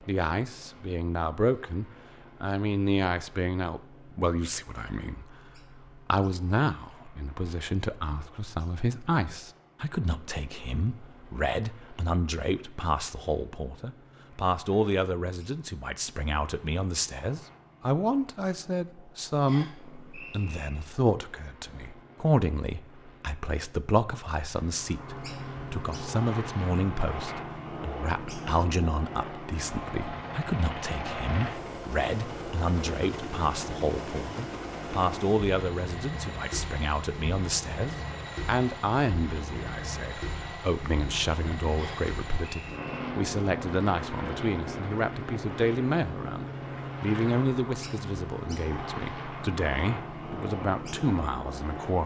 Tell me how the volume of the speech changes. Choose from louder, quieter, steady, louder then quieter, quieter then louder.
steady.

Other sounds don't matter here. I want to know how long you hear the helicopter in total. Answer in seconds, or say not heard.
52 s.